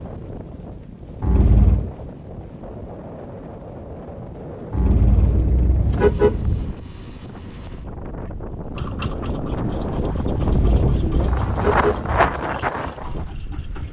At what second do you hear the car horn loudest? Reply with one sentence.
The volume of the car horn peaks at 6 seconds.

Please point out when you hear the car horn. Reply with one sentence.
The car horn can be heard from 1.2 to 1.9 s, from 4.7 to 6.8 s and from 10.3 to 12.3 s.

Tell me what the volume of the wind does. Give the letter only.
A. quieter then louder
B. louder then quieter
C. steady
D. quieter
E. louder
E.